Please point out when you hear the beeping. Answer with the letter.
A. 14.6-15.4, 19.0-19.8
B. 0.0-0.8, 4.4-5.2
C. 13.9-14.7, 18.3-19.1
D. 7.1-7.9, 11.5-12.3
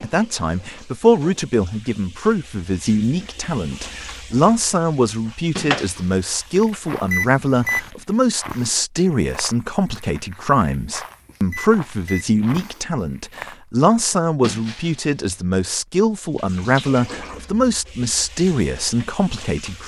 D.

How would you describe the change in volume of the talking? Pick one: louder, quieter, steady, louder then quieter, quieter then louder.
steady.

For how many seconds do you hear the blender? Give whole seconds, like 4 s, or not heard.
not heard.